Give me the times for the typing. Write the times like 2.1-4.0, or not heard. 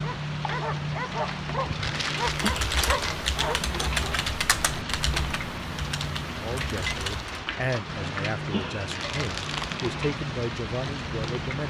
2.2-7.3.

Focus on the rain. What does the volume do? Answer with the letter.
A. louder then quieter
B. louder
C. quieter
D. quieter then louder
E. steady
E.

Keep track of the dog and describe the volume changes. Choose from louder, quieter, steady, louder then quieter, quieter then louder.
steady.